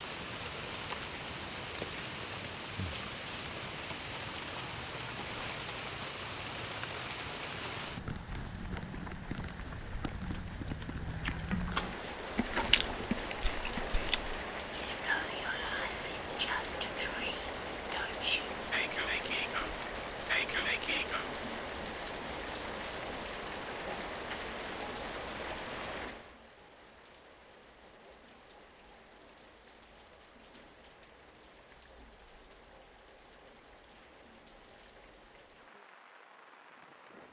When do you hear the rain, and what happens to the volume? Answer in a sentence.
The rain can be heard from 0.0 to 37.2 s, getting quieter.